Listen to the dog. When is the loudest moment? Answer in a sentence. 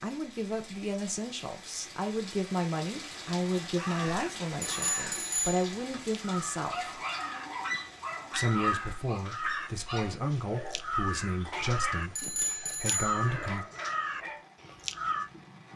The volume of the dog peaks at 9 seconds.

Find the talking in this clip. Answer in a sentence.
The talking can be heard from 0.0 to 7.0 s and from 8.3 to 13.7 s.